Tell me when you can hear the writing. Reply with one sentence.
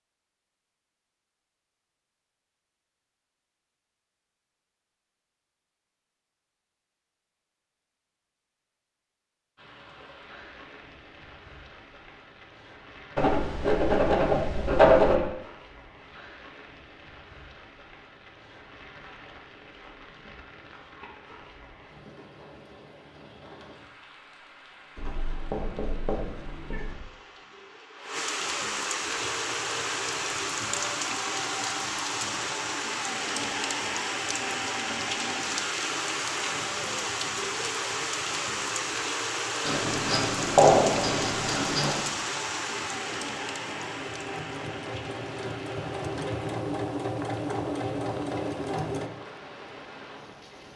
The writing can be heard from 13.2 to 15.2 s, from 24.9 to 27.0 s and from 39.6 to 42.0 s.